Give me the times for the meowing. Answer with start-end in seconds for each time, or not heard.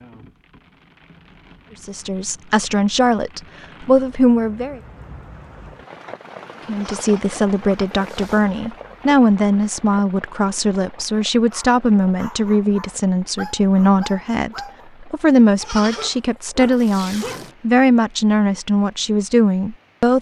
not heard.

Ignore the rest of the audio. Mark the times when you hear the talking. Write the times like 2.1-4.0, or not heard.
1.8-4.8, 6.7-20.1.